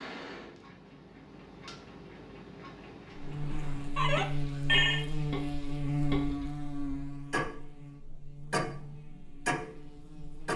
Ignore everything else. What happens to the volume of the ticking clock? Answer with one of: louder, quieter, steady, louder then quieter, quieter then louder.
louder.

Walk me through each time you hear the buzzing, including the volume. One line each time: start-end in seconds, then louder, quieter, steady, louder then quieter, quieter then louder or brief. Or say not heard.
3.1-10.5 quieter.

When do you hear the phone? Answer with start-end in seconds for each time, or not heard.
3.6-5.0.